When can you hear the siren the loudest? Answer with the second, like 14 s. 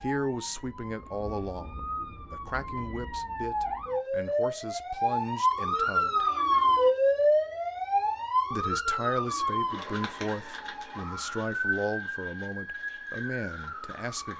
7 s.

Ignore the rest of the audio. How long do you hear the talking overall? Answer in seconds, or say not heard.
12 s.